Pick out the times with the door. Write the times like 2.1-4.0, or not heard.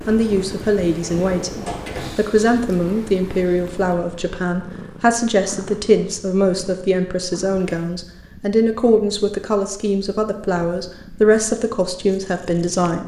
1.0-2.2.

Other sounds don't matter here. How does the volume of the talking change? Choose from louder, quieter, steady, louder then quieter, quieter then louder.
steady.